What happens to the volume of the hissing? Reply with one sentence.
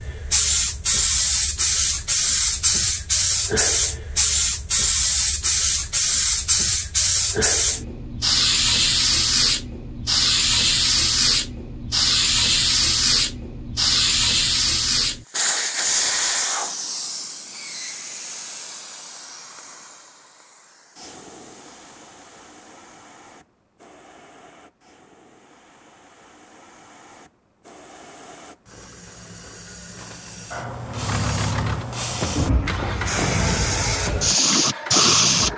The volume of the hissing goes down, then up.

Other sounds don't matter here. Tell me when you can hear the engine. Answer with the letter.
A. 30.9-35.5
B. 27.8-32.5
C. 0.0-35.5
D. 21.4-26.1
A.